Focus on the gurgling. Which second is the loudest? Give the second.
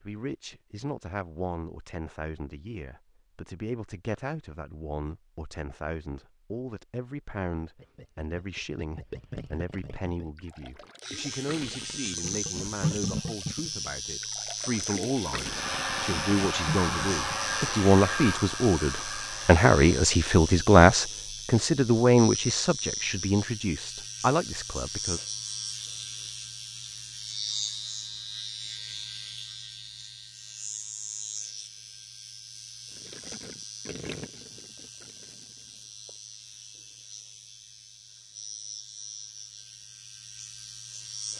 13 s.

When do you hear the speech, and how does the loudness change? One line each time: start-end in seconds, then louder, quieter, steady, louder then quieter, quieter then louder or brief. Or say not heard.
0.0-25.2 louder.